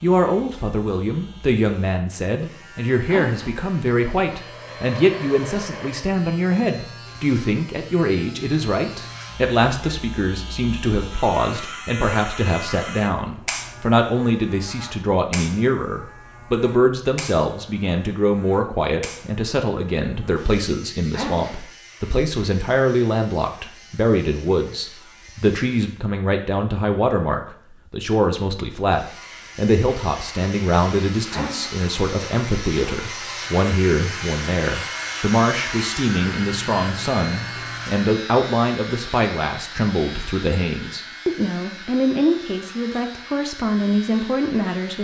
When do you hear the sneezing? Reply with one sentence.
You can hear the sneezing from 3.0 to 3.5 s, from 21.1 to 21.6 s and from 31.3 to 31.8 s.